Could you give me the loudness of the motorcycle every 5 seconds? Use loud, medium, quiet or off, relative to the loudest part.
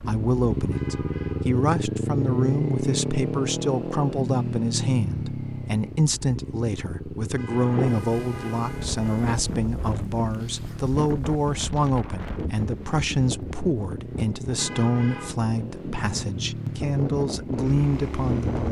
loud, medium, medium, medium.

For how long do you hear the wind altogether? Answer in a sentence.
The wind can be heard for 11 seconds in total.